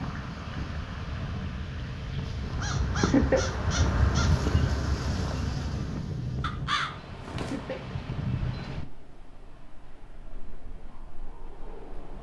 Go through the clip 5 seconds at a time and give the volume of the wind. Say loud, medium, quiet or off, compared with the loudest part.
loud, loud, quiet.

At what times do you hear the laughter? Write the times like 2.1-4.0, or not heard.
3.0-3.5, 7.3-8.0.